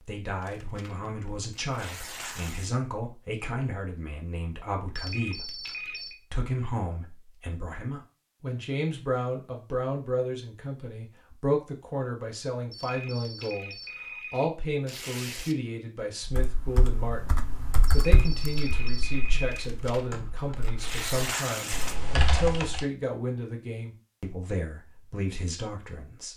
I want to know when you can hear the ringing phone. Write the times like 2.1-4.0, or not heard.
5.0-6.2, 12.7-14.4, 17.9-19.6.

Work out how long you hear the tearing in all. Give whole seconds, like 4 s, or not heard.
6 s.